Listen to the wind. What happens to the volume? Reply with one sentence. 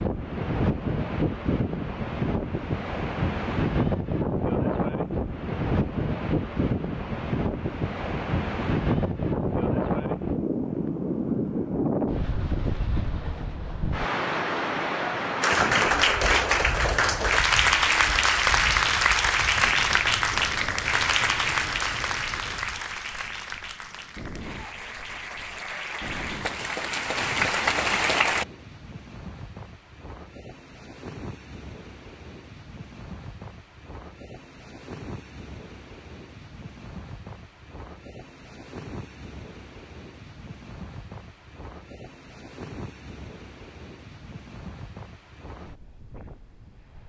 The loudness of the wind goes down.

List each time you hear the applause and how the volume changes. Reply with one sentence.
The applause can be heard from 15.4 to 28.4 s, getting quieter then louder.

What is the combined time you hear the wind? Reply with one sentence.
You can hear the wind for 47 seconds altogether.